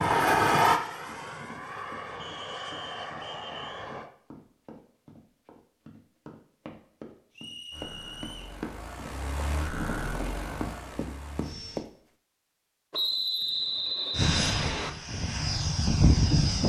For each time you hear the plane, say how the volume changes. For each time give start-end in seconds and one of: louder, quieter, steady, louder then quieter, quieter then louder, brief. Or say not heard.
0.0-4.1 quieter
7.7-11.8 louder then quieter
14.1-16.6 brief.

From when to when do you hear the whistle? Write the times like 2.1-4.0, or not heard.
2.2-3.9, 7.3-8.6, 12.9-14.9.